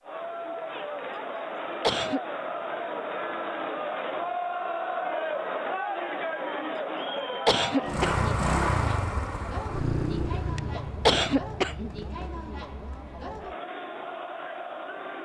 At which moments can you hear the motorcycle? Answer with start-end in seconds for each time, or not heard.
7.8-12.6.